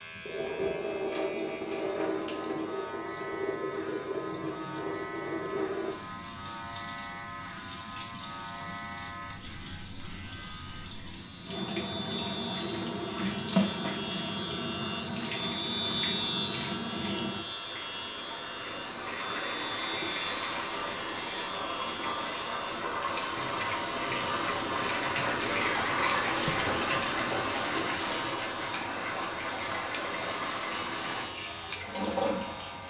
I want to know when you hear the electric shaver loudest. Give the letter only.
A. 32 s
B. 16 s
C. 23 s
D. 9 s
B.